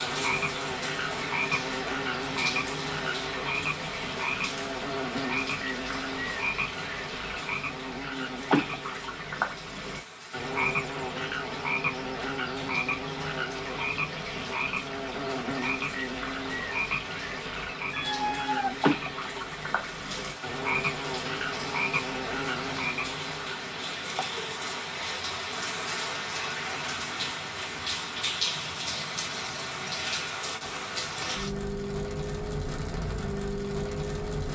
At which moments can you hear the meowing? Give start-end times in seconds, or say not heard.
17.9-19.4.